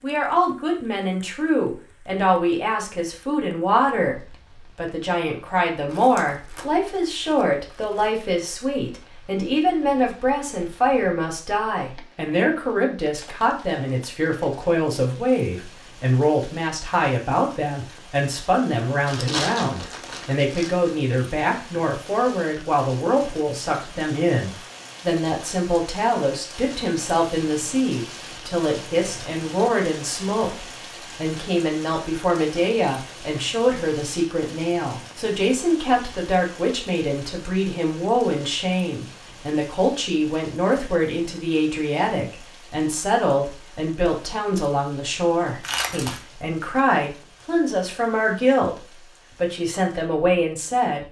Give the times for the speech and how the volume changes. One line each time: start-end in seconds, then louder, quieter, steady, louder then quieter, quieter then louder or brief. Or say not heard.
0.0-48.8 steady
49.4-51.0 brief.